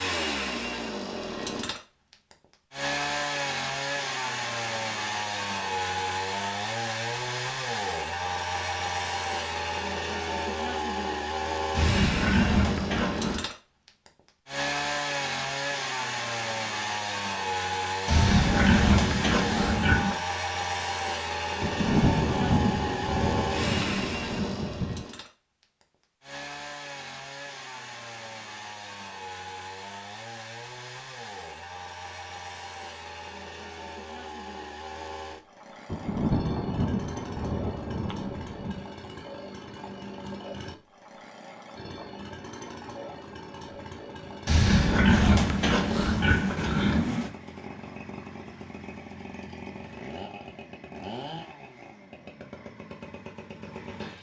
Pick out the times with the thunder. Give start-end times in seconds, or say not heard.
21.6-25.1, 35.9-38.9.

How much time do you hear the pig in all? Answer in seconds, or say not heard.
7 s.